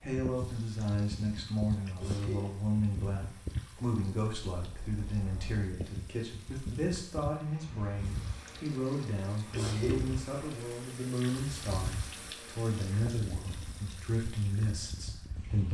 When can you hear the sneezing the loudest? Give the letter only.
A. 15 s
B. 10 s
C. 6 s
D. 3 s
B.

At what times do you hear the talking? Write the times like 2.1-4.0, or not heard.
0.0-15.6.